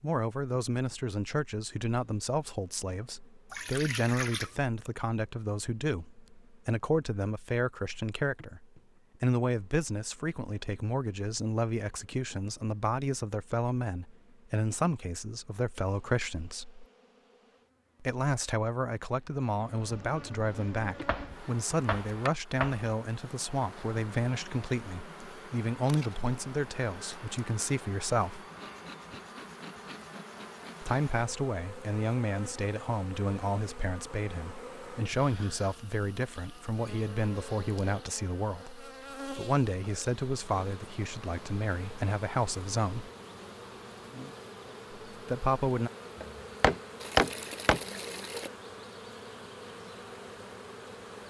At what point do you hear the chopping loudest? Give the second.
47 s.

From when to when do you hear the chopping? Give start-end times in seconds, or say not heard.
20.9-22.9, 46.2-47.8.